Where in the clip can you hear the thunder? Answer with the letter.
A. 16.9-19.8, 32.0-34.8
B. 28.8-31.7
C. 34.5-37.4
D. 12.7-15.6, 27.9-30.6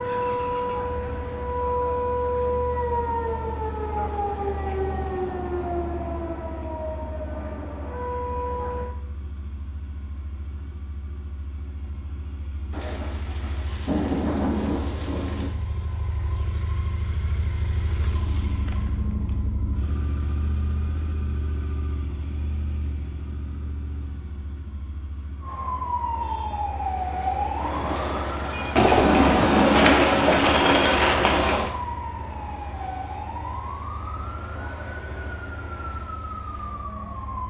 D.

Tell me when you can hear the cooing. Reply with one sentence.
You can hear the cooing from 28.8 to 31.7 s.